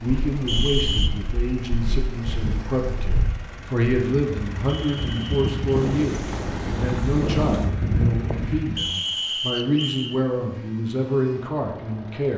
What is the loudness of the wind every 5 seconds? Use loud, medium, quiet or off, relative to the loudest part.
medium, loud, off.